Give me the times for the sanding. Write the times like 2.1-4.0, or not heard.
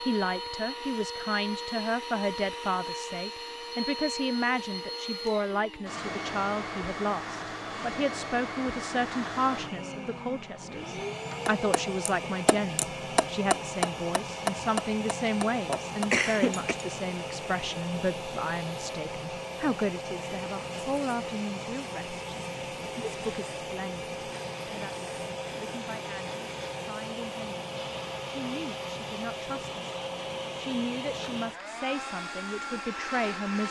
not heard.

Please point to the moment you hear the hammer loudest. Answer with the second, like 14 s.
14 s.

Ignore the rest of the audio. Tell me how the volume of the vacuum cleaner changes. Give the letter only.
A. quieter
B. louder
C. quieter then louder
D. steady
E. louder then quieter
D.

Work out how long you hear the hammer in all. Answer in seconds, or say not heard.
5 s.